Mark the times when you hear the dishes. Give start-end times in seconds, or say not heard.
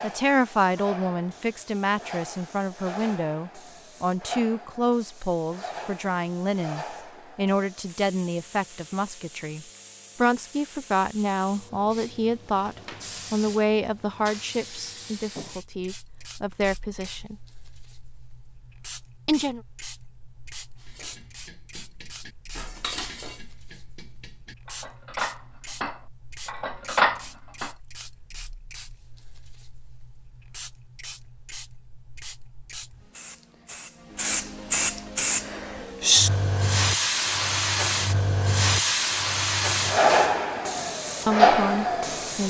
20.8-27.7.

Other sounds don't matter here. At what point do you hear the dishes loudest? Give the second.
27 s.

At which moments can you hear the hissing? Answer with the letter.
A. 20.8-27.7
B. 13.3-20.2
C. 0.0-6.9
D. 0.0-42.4
D.